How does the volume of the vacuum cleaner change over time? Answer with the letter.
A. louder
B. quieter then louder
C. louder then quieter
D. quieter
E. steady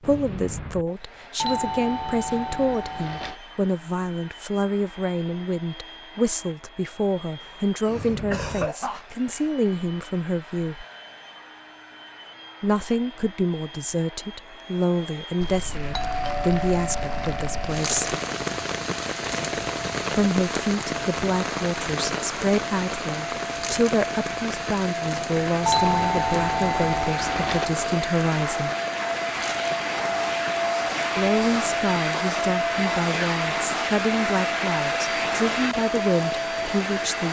A.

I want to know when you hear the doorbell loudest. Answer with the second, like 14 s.
26 s.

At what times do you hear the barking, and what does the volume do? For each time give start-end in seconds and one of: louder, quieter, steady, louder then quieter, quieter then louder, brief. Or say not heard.
not heard.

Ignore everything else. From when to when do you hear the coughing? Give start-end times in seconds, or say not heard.
7.4-9.1.